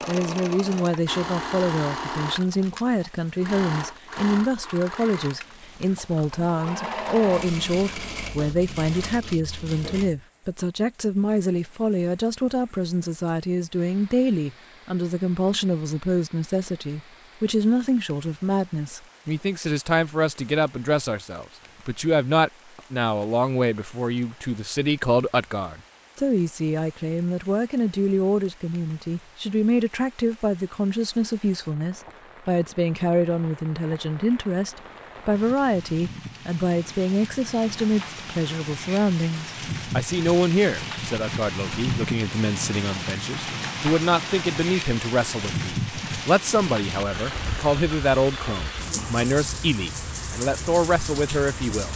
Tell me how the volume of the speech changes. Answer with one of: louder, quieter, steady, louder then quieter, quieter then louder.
steady.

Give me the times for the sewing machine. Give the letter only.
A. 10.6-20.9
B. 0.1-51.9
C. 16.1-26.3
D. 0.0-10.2
D.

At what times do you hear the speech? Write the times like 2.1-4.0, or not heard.
0.1-51.9.